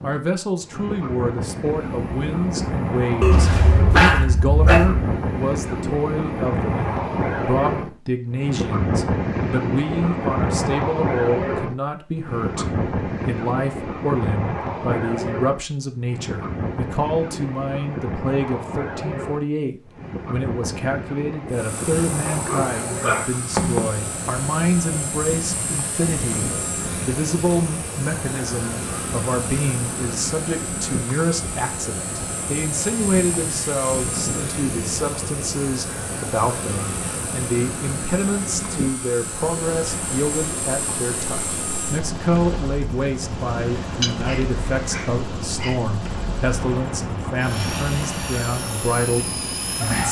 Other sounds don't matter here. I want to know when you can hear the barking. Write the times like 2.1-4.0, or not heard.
3.2-5.1, 22.2-23.9, 44.0-45.8.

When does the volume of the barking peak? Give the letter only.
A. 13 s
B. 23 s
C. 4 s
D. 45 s
C.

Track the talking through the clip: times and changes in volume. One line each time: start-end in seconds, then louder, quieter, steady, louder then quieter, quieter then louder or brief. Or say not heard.
0.0-50.0 steady.